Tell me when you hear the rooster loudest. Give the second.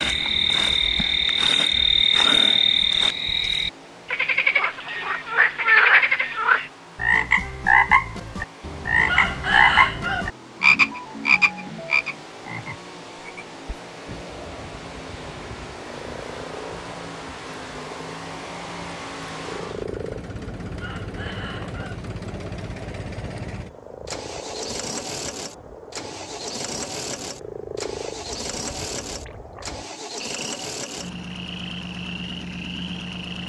10 s.